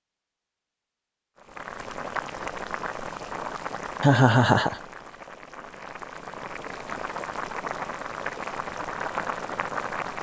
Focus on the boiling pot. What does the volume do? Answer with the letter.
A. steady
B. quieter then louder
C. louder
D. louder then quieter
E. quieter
B.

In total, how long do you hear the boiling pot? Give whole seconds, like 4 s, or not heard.
9 s.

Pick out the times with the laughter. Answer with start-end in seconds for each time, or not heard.
4.0-4.8.